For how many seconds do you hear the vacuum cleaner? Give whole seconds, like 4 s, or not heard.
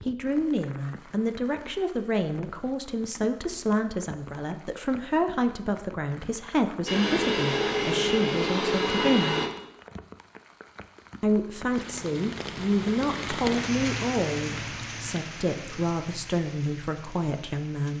3 s.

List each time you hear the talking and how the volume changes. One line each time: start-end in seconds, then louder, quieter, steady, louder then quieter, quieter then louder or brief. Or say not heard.
0.1-9.3 steady
11.2-17.9 steady.